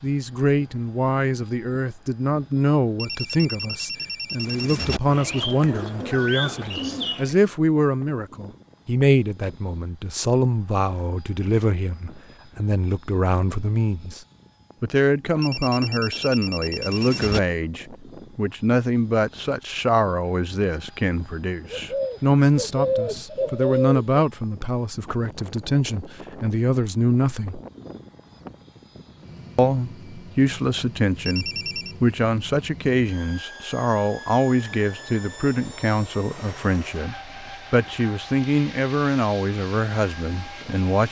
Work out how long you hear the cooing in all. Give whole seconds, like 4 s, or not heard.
5 s.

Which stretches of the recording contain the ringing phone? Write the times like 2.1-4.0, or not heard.
3.0-5.0, 15.4-17.4, 31.2-31.9.